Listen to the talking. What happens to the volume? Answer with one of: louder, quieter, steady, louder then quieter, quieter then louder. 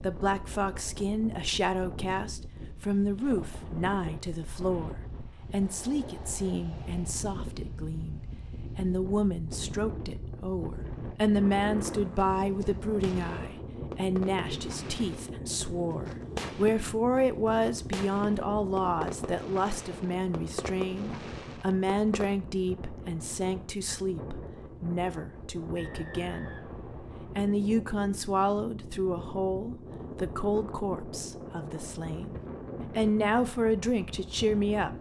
steady.